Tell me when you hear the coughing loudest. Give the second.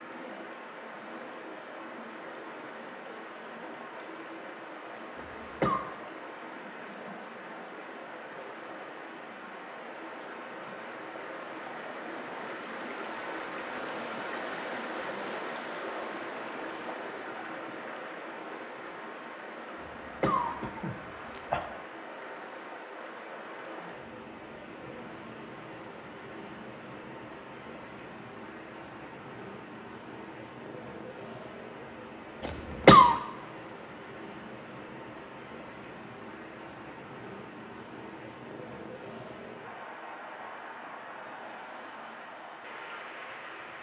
33 s.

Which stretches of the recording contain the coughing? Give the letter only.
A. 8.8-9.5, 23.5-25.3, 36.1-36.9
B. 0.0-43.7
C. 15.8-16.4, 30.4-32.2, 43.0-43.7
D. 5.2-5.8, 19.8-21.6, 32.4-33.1
D.